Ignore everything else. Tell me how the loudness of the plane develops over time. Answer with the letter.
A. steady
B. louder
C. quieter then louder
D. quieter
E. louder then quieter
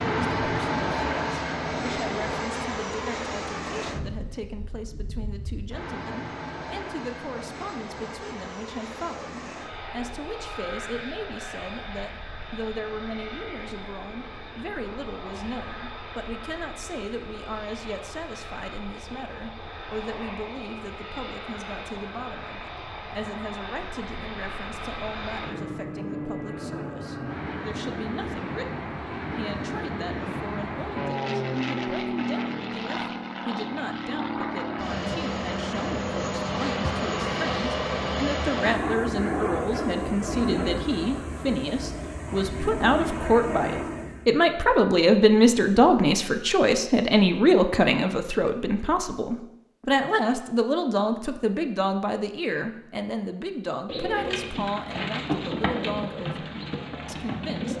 C.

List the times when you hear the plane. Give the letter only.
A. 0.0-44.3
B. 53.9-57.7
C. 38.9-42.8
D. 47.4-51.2
A.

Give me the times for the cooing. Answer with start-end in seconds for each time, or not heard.
53.9-57.7.